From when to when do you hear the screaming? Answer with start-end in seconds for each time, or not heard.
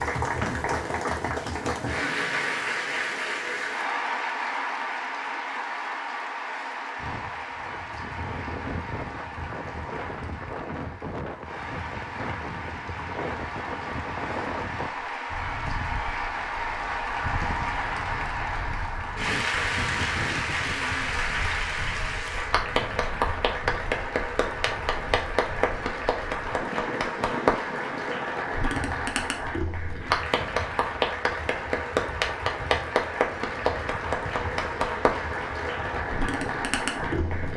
not heard.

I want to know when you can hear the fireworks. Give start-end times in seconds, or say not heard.
not heard.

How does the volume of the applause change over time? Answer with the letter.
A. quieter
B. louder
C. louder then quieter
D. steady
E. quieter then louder
E.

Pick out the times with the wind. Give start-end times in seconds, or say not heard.
7.0-37.5.